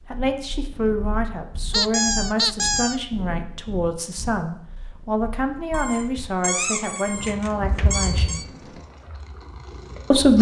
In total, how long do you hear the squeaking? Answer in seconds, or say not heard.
4 s.